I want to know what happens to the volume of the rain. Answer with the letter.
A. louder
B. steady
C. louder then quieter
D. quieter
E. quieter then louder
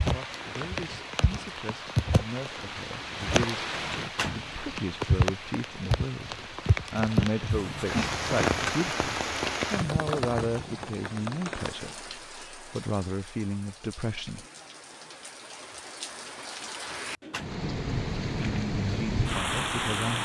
E.